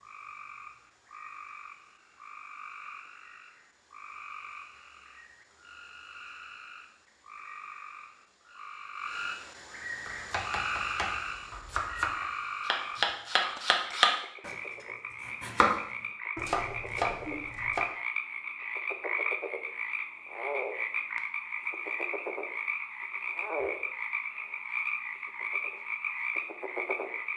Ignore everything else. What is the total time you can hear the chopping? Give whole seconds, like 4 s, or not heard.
7 s.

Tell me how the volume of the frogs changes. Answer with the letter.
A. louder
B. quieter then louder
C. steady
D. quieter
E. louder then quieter
A.